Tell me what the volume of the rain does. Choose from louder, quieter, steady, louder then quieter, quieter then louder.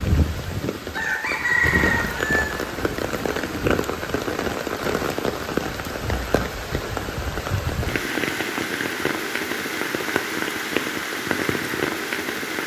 steady.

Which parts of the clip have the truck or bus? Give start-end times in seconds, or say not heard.
not heard.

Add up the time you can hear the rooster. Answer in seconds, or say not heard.
2 s.